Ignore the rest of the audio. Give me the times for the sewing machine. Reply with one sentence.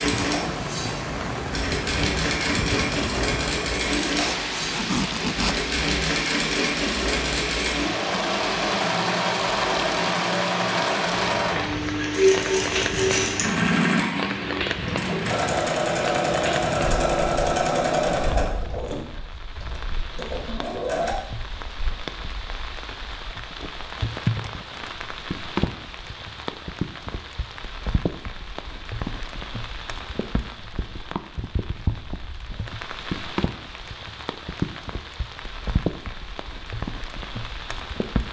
You can hear the sewing machine from 0.0 to 21.1 s.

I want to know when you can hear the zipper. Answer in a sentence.
You can hear the zipper from 4.2 to 5.5 s.